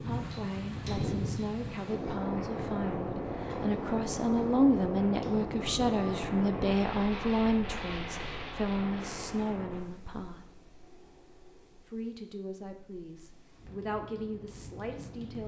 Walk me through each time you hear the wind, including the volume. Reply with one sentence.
The wind can be heard from 0.0 to 15.4 s, getting quieter.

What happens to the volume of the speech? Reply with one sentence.
The loudness of the speech goes up, then down.